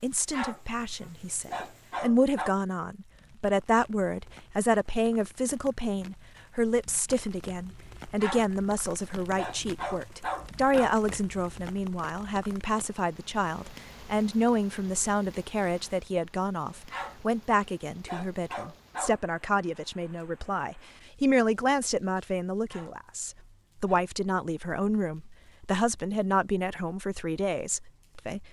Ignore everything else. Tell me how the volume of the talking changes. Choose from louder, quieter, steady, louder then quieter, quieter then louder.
steady.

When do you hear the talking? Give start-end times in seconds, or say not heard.
0.0-28.4.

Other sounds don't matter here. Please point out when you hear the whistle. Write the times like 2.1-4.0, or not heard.
not heard.